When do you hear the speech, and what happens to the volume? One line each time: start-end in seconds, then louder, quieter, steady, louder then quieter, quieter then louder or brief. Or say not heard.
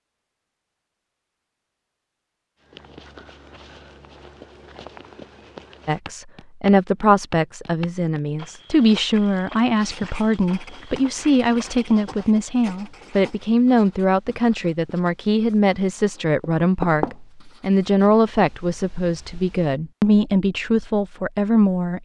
5.8-22.0 steady.